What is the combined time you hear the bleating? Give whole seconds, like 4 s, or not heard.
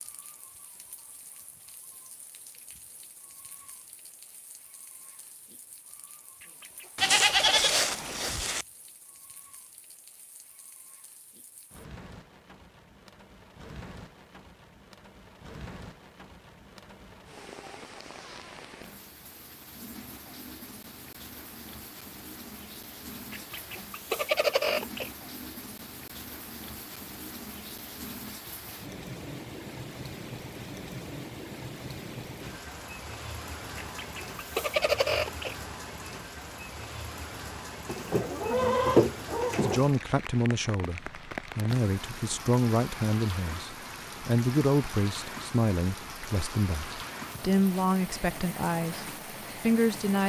4 s.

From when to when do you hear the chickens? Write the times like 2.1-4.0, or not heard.
6.4-8.0, 23.3-25.1, 33.8-35.5.